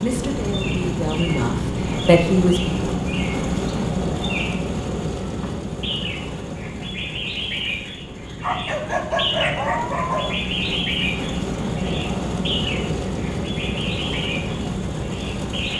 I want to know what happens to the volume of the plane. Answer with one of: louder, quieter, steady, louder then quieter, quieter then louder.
quieter then louder.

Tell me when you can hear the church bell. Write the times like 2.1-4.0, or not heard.
not heard.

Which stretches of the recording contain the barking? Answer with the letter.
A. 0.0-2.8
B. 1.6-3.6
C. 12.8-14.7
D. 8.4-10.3
D.